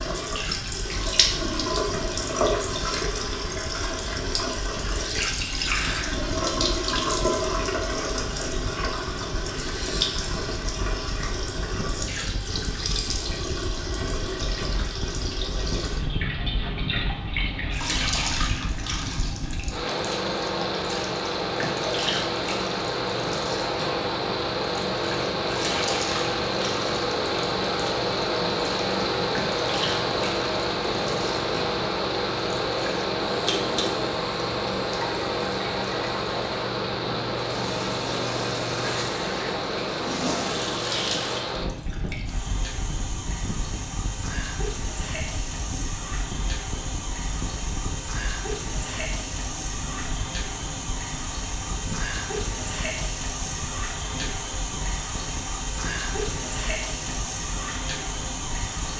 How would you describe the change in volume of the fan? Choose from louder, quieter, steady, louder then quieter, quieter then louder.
louder then quieter.